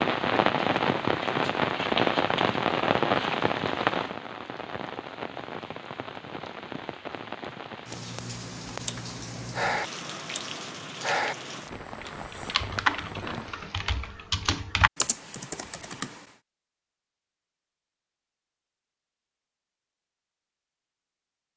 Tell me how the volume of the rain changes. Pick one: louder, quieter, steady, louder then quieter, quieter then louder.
quieter.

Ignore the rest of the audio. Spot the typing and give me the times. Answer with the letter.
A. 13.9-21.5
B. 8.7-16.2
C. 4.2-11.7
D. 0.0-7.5
B.